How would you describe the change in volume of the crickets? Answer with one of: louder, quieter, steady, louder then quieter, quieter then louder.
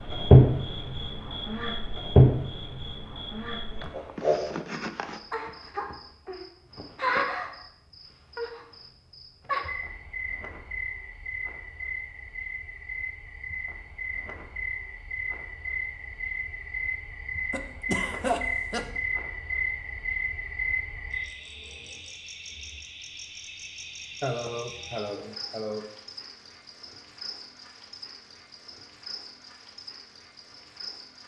quieter.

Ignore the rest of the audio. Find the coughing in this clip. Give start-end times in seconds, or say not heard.
3.8-5.2, 17.5-19.0, 24.2-25.9.